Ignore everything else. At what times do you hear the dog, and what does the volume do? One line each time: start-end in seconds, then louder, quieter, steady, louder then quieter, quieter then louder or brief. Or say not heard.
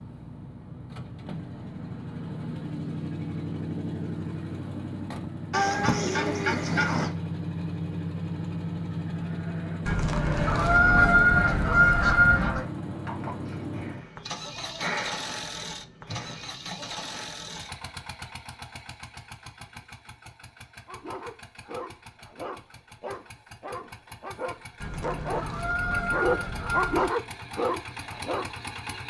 20.9-28.6 louder.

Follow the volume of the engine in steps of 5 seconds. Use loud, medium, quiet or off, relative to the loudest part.
loud, loud, loud, medium, quiet, medium.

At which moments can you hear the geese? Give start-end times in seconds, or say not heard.
5.5-7.1, 9.8-12.7, 24.8-27.1.